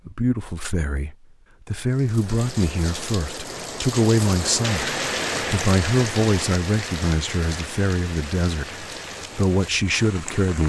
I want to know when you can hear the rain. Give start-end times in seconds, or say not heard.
1.9-10.6.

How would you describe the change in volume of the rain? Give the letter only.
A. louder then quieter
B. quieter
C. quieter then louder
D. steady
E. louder
A.